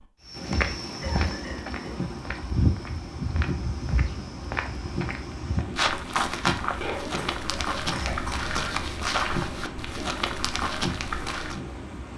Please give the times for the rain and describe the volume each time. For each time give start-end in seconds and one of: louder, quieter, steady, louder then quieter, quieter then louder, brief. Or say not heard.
0.0-12.1 steady.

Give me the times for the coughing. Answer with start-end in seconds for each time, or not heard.
1.0-2.0, 6.8-8.5.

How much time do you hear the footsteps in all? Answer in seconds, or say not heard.
11 s.